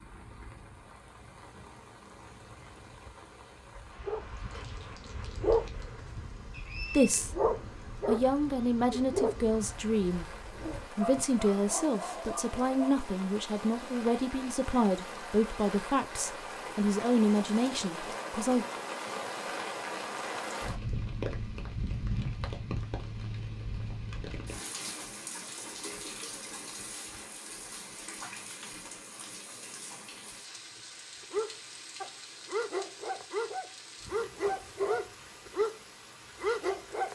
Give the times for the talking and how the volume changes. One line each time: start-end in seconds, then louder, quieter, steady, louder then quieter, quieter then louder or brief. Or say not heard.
6.9-18.6 steady.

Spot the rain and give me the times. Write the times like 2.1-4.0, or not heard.
0.0-37.1.